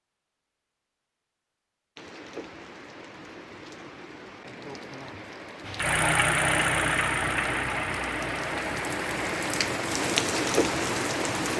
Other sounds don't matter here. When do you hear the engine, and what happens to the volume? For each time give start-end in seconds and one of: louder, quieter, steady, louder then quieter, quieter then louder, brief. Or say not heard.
5.7-11.5 quieter.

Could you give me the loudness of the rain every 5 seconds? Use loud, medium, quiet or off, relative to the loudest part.
quiet, medium, loud.